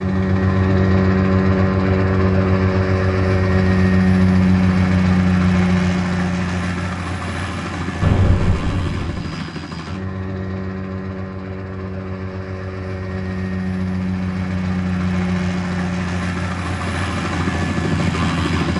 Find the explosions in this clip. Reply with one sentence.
The explosions can be heard from 8.0 to 9.3 s.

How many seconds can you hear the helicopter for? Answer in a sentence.
You can hear the helicopter for 19 seconds altogether.